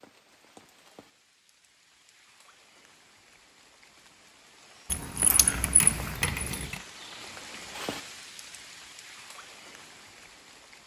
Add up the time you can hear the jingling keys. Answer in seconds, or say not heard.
2 s.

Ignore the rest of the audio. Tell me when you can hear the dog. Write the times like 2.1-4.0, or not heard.
not heard.